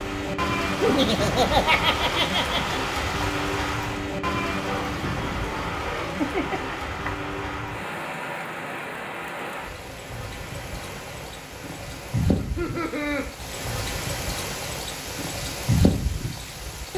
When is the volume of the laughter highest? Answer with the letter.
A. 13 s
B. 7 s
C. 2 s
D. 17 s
C.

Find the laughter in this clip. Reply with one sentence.
The laughter can be heard from 0.8 to 2.8 s, from 5.9 to 7.3 s and from 12.3 to 13.2 s.